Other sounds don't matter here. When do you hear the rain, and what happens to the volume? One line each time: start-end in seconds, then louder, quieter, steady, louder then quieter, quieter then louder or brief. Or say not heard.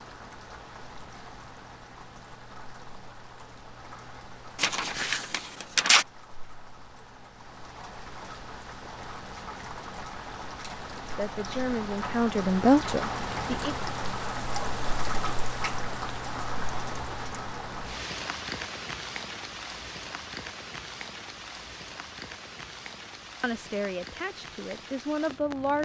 0.0-25.7 louder then quieter.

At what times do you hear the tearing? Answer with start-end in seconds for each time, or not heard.
4.5-6.0.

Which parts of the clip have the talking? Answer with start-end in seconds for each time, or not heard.
11.2-13.8, 23.4-25.7.